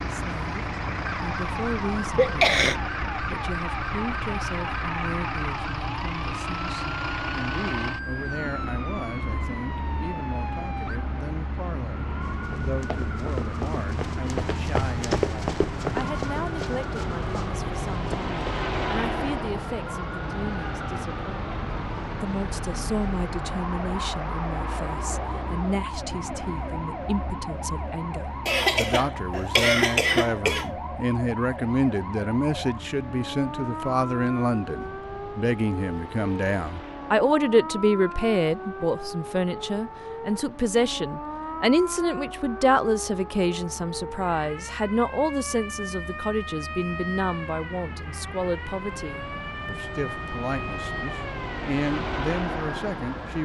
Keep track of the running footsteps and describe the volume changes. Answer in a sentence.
The volume of the running footsteps goes up, then down.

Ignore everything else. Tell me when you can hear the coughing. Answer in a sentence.
The coughing can be heard from 2.1 to 2.8 s and from 28.4 to 30.6 s.